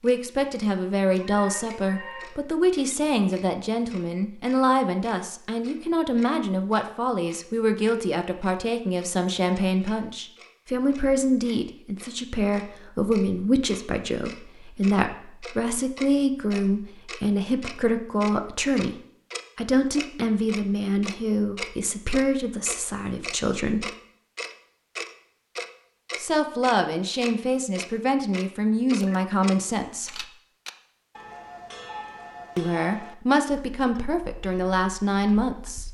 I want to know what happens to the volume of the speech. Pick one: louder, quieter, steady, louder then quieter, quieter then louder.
steady.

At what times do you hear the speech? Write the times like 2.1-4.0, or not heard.
0.0-18.9, 19.6-23.9, 26.1-30.2, 32.5-35.8.